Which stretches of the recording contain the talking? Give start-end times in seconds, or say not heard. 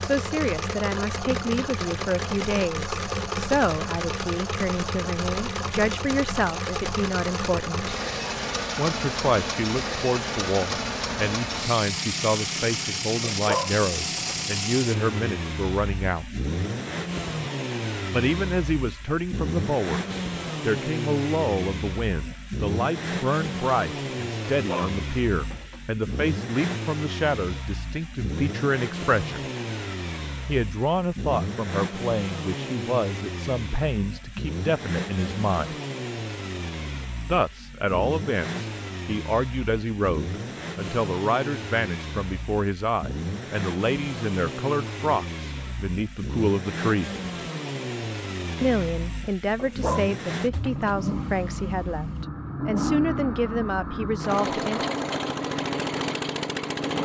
0.0-8.0, 8.8-16.2, 18.1-29.4, 30.4-35.8, 37.2-47.1, 48.6-55.0.